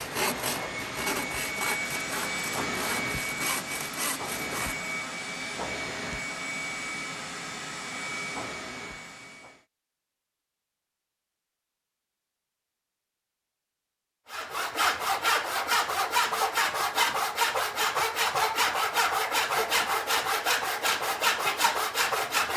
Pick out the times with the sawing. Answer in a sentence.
You can hear the sawing from 0.0 to 4.8 s and from 14.3 to 22.5 s.